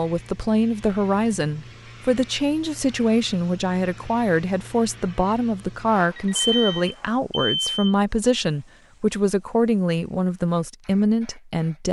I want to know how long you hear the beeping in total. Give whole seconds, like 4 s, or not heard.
2 s.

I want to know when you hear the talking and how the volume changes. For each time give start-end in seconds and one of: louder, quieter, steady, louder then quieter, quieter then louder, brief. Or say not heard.
0.0-11.8 steady.